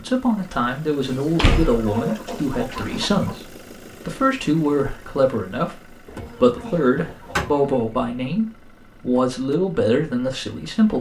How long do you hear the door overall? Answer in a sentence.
You can hear the door for 3 seconds altogether.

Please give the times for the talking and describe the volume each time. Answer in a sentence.
The talking can be heard from 0.0 to 10.9 s, at a steady volume.